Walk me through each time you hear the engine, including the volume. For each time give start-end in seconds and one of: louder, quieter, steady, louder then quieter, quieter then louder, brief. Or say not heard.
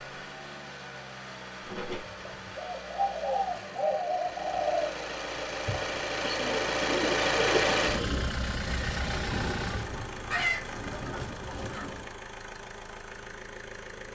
0.0-14.1 louder then quieter.